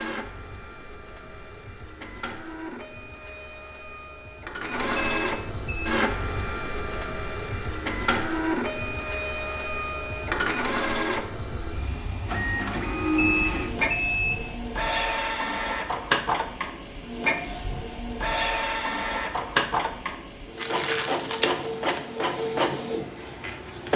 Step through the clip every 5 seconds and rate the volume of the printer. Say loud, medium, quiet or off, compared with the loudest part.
medium, loud, loud, loud, loud.